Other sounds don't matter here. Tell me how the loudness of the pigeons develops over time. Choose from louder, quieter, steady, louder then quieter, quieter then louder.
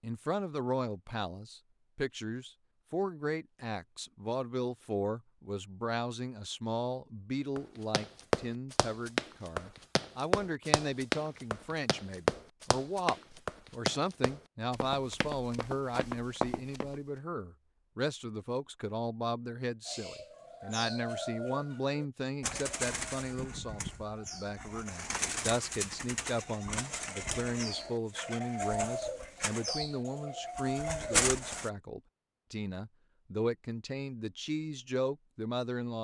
louder.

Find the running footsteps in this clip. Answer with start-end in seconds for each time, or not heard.
7.5-16.9.